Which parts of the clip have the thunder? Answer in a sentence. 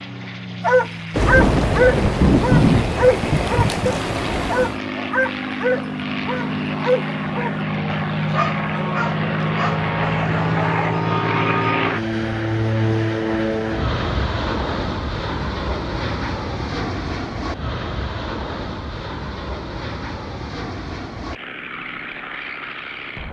You can hear the thunder from 1.1 to 4.8 s.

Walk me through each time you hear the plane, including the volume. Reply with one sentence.
The plane can be heard from 0.0 to 23.2 s, getting louder then quieter.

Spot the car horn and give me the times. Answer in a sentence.
You can't hear the car horn here.